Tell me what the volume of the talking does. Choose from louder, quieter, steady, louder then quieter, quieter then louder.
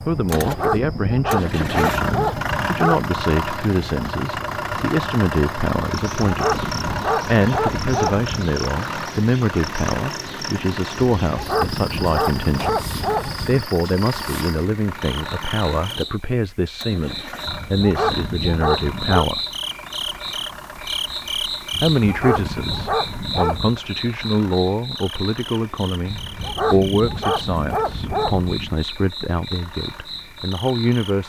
steady.